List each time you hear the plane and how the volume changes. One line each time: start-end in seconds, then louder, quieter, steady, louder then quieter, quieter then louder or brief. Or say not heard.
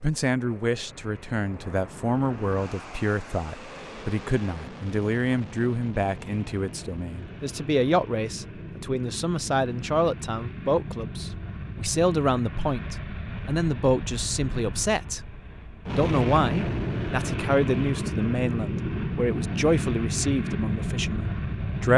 0.0-21.9 louder.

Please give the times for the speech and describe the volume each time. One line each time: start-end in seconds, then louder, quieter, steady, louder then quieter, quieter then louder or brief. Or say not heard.
0.0-21.9 steady.